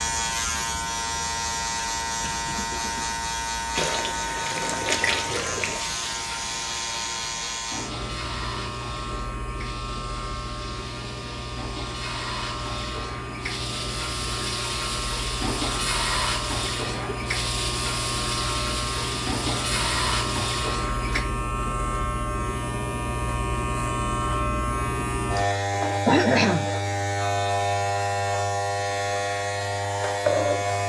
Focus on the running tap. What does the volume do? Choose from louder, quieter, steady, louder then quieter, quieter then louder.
quieter then louder.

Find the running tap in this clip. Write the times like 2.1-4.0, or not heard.
3.8-21.2.